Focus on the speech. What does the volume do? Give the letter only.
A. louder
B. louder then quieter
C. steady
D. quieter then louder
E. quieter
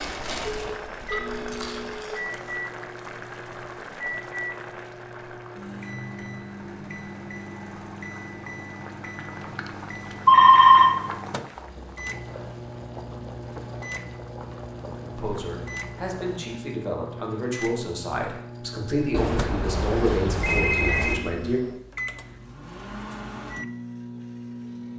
A.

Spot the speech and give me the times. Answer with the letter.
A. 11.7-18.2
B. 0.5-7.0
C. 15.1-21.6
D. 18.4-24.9
C.